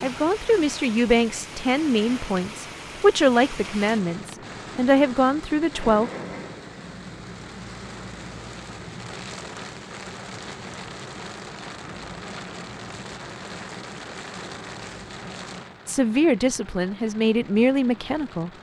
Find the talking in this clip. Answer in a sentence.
The talking can be heard from 0.0 to 6.1 s and from 15.8 to 18.5 s.